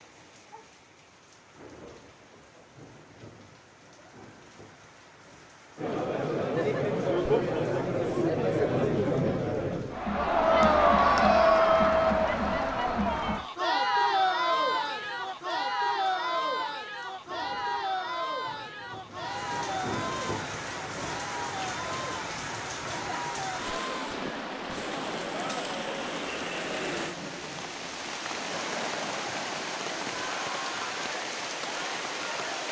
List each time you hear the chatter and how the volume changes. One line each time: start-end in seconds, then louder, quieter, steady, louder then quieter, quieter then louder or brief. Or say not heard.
5.8-32.6 quieter.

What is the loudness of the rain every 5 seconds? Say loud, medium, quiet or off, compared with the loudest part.
quiet, quiet, quiet, medium, loud, loud, loud.